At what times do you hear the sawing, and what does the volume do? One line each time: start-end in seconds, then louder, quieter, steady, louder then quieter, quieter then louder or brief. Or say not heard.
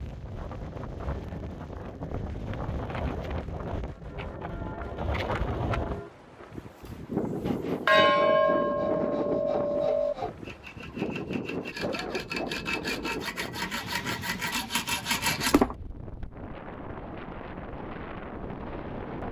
7.4-15.8 louder.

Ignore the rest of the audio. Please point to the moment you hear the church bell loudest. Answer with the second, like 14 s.
8 s.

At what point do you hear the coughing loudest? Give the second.
12 s.